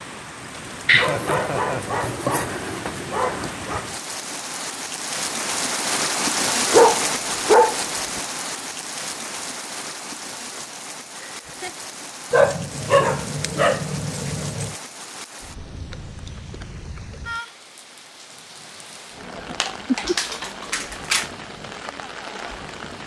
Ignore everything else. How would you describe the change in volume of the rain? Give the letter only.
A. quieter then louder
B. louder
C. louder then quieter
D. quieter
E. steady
C.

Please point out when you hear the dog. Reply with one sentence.
The dog can be heard from 0.8 to 3.9 s, from 6.7 to 8.2 s, from 12.3 to 14.8 s and from 19.6 to 21.3 s.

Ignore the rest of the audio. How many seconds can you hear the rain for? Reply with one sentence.
You can hear the rain for 23 seconds altogether.